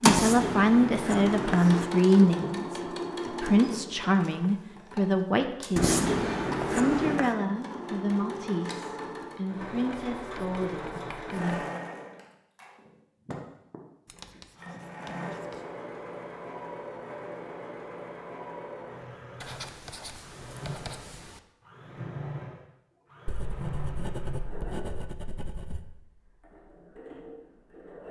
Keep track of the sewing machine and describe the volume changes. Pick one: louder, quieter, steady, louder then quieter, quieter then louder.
quieter.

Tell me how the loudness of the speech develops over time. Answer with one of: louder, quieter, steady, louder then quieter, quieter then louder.
quieter.